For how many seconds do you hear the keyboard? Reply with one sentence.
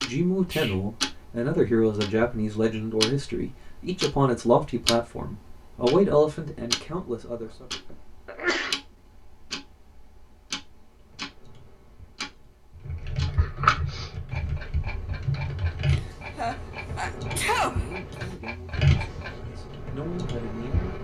You can hear the keyboard for 10 seconds altogether.